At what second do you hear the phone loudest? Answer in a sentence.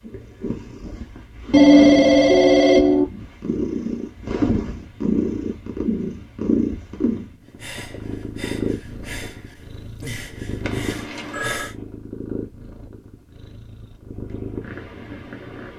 The loudest moment of the phone is at 2 seconds.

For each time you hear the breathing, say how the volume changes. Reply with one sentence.
You can hear the breathing from 7.5 to 11.8 s, getting quieter then louder.